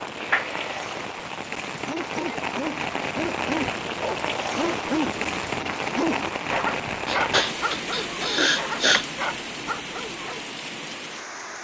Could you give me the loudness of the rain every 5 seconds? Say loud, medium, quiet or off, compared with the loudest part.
loud, loud, medium.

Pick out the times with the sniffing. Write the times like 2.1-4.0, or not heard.
0.1-0.8, 6.6-9.1.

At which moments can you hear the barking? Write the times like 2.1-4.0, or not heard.
1.7-10.6.